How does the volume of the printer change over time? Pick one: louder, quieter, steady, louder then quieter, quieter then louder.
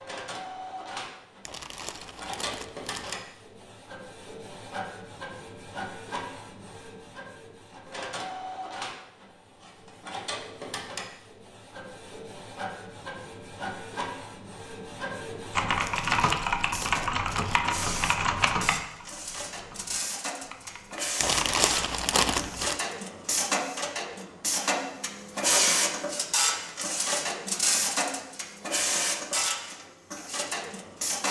louder.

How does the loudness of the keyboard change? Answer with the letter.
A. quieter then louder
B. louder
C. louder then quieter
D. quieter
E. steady
D.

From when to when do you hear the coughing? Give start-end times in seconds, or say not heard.
not heard.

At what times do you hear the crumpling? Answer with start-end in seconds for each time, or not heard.
1.4-3.1, 15.8-17.6, 21.2-22.8.